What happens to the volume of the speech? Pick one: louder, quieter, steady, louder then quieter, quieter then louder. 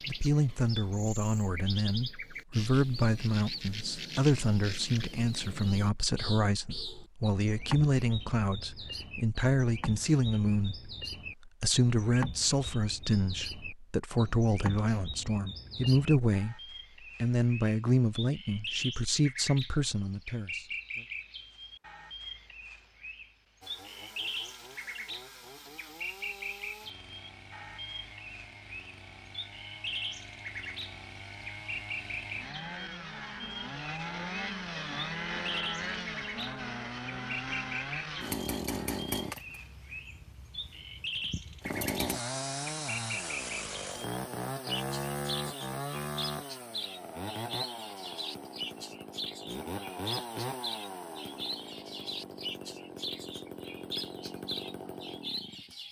steady.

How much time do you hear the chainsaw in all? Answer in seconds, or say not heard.
32 s.